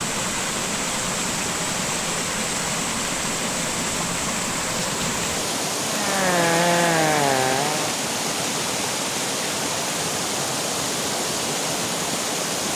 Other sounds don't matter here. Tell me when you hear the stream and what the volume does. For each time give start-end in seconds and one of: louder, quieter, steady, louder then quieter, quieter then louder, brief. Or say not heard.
0.0-12.7 steady.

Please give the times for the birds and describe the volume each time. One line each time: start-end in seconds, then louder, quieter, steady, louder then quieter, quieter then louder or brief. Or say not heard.
not heard.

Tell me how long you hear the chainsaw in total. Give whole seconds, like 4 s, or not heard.
2 s.